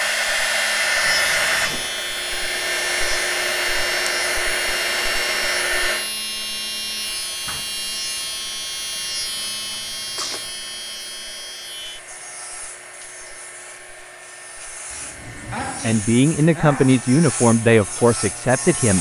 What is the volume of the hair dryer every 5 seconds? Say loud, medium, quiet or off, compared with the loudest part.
loud, medium, quiet, quiet.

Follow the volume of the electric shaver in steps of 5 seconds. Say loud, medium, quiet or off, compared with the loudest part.
loud, loud, medium, medium.